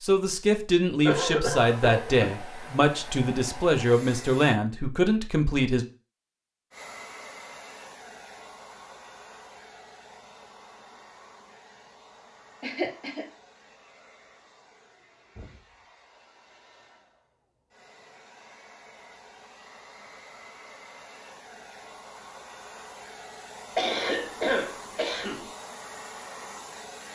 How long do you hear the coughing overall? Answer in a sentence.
The coughing can be heard for 4 seconds in total.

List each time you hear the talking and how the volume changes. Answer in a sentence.
You can hear the talking from 0.0 to 5.8 s, at a steady volume.